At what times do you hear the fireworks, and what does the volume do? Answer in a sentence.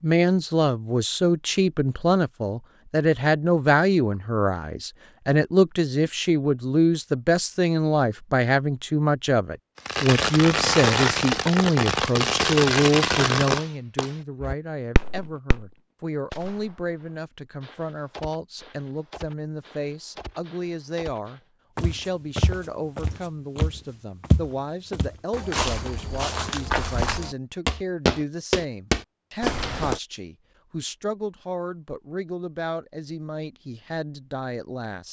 The fireworks can be heard from 9.8 to 21.4 s, getting quieter.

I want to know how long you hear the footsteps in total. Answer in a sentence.
You can hear the footsteps for 8 seconds altogether.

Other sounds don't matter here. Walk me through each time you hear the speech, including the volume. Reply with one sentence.
The speech can be heard from 0.0 to 35.0 s, getting quieter.